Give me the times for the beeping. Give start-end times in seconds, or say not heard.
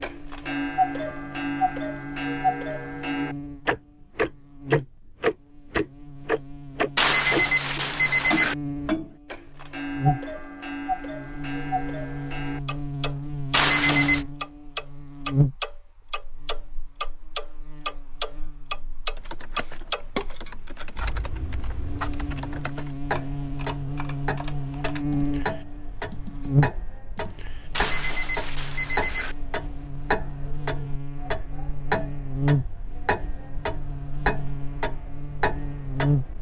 7.0-8.6, 13.5-14.2, 27.8-29.4.